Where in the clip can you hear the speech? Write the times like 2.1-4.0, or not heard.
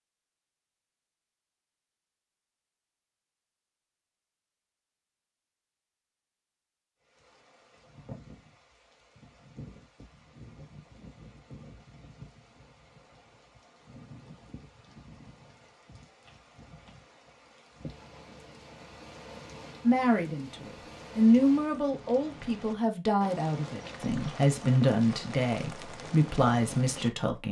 19.8-27.4.